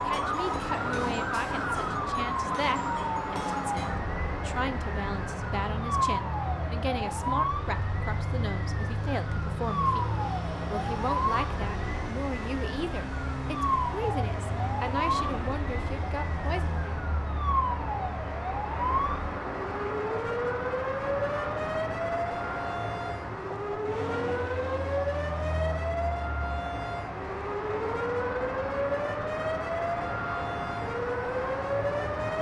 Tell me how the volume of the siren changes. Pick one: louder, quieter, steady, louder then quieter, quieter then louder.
steady.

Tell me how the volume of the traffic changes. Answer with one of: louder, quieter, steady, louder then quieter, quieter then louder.
steady.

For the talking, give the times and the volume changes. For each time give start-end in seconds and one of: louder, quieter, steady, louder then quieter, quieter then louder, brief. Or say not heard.
0.1-16.9 steady.